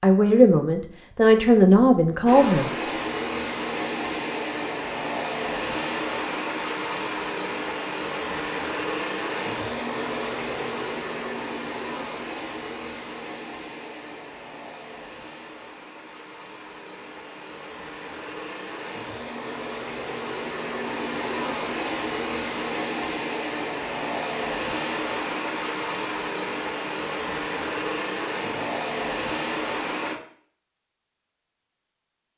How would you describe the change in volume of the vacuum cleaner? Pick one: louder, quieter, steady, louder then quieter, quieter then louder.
quieter then louder.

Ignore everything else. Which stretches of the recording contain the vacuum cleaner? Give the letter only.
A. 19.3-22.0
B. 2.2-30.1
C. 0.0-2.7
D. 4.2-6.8
B.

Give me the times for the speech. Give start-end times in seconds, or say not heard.
0.0-2.7.